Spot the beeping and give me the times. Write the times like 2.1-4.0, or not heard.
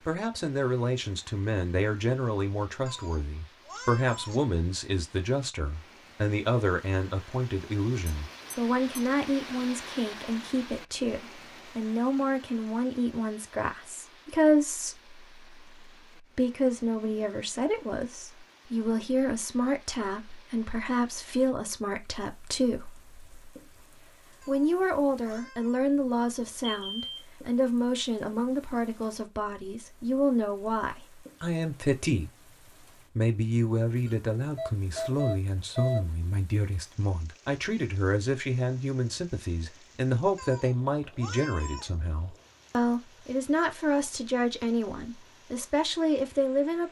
8.1-9.0, 26.4-27.2, 34.0-36.1.